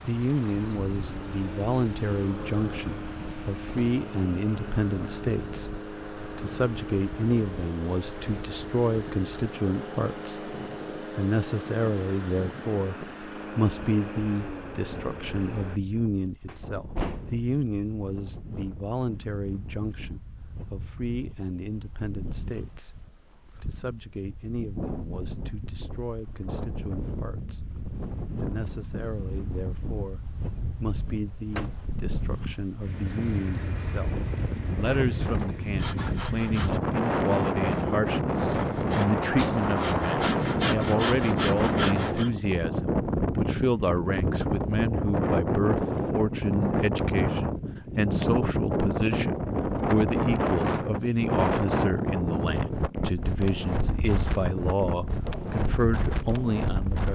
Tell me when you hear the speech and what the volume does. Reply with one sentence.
The speech can be heard from 0.1 to 34.1 s, getting quieter; and from 34.8 to 57.1 s, at a steady volume.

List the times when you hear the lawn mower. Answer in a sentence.
The lawn mower can be heard from 0.0 to 15.8 s.